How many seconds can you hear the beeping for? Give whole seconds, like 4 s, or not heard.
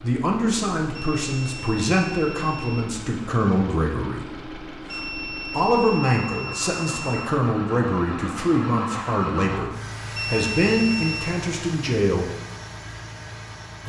6 s.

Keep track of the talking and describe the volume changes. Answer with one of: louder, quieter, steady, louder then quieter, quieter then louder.
steady.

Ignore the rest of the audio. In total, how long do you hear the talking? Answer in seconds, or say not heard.
12 s.